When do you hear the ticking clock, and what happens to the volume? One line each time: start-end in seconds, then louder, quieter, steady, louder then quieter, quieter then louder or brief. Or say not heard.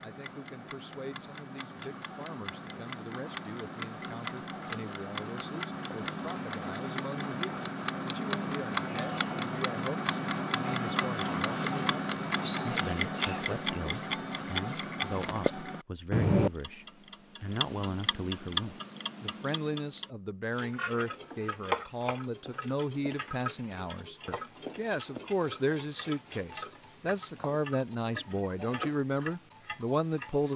0.0-30.5 louder then quieter.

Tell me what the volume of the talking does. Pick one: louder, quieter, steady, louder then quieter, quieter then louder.
louder.